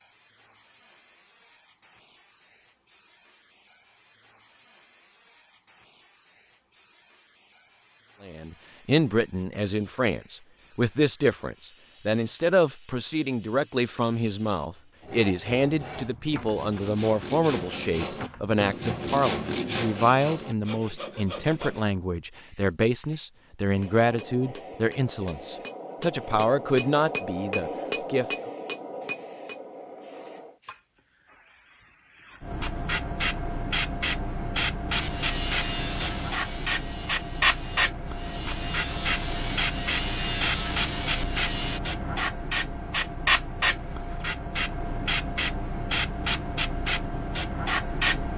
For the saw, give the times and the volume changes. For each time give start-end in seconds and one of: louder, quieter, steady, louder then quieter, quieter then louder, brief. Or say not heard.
15.0-21.9 louder then quieter
35.0-41.8 quieter then louder.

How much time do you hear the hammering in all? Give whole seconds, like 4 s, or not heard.
7 s.